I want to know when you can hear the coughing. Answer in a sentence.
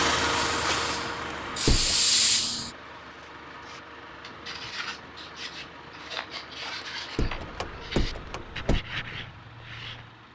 You can't hear the coughing here.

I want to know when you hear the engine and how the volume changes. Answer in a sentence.
You can hear the engine from 0.0 to 10.3 s, getting quieter.